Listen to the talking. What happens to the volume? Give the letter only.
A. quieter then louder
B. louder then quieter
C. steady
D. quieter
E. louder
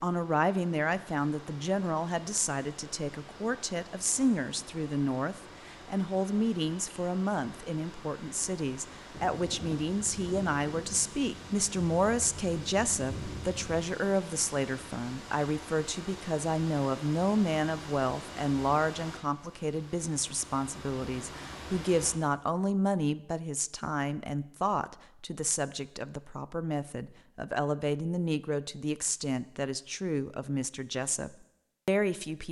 C.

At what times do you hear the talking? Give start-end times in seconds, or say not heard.
0.0-32.4.